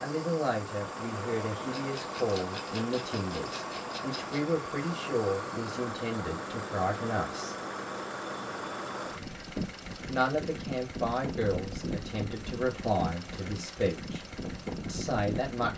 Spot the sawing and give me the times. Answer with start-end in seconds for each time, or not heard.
not heard.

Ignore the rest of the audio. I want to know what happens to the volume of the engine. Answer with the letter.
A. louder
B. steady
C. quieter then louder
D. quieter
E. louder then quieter
B.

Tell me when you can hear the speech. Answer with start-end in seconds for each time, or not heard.
0.0-7.5, 10.1-14.2, 14.8-15.7.